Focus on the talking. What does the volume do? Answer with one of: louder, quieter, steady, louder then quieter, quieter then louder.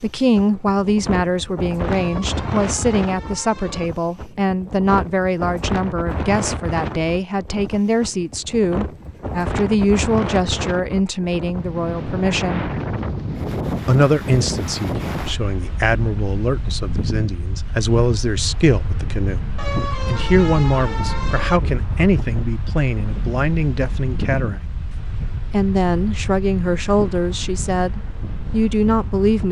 steady.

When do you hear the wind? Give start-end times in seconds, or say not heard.
0.0-29.4.